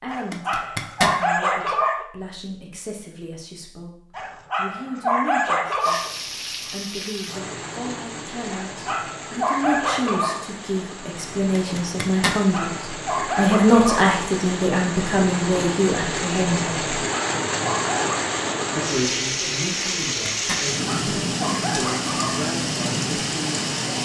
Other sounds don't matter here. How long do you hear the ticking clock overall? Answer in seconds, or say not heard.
not heard.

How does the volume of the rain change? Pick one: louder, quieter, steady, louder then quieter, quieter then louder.
louder.